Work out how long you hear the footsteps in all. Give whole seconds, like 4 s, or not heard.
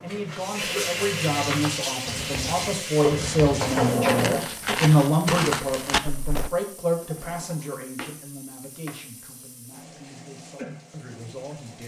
6 s.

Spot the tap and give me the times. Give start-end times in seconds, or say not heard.
0.0-11.8.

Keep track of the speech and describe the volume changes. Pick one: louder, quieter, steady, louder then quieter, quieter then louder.
louder then quieter.